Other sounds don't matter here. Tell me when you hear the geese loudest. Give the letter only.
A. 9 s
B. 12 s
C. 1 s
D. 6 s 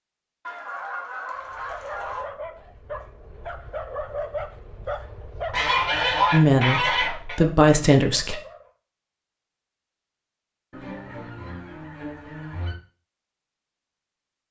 D.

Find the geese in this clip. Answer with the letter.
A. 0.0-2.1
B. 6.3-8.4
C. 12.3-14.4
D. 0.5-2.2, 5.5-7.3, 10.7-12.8
D.